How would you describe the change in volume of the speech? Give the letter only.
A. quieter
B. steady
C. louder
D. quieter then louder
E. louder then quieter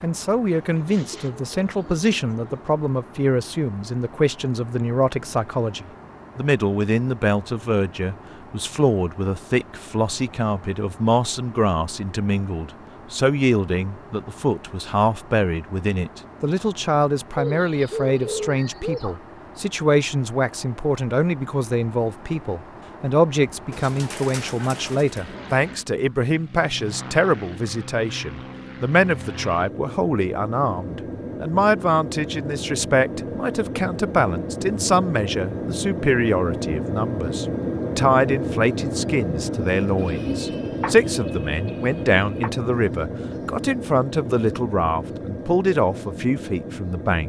B.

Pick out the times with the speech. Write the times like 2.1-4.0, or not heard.
0.0-47.2.